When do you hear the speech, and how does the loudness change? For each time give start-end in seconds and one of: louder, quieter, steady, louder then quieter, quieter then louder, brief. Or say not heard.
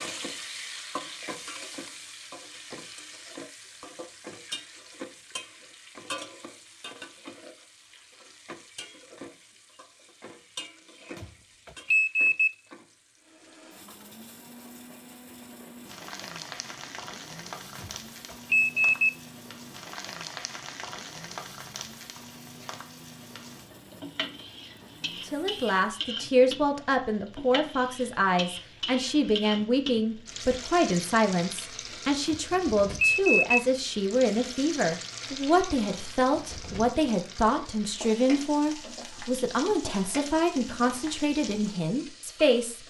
25.2-42.8 steady.